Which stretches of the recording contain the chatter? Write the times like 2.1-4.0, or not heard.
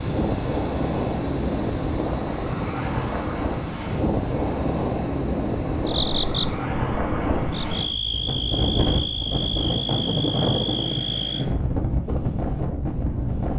not heard.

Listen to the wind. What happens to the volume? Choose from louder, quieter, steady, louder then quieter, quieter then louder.
steady.